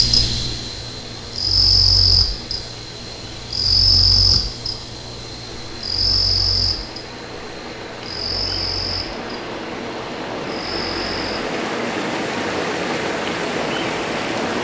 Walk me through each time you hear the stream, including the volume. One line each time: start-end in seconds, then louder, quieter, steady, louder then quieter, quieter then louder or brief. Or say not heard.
0.0-14.5 louder.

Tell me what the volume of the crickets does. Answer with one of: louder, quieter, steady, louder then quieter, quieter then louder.
quieter.